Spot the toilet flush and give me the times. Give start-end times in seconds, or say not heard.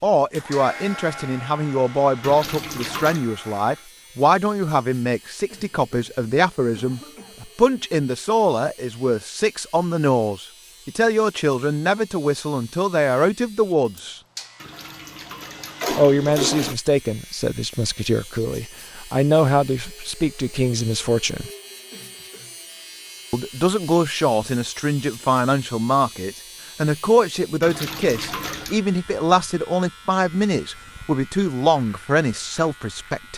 2.2-3.2, 14.6-16.8, 27.6-28.8.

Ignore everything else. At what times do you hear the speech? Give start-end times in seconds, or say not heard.
0.0-14.2, 15.9-21.5, 23.3-33.3.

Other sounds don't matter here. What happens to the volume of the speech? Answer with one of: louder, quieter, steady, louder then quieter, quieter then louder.
steady.